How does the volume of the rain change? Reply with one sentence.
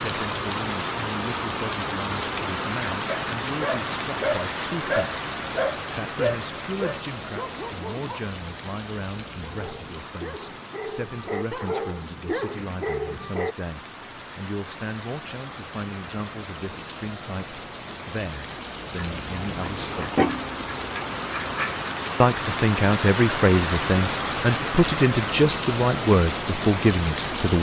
The volume of the rain goes down, then up.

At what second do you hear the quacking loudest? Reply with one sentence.
The volume of the quacking peaks at 20 seconds.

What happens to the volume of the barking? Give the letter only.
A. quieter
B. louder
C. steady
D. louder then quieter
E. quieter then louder
E.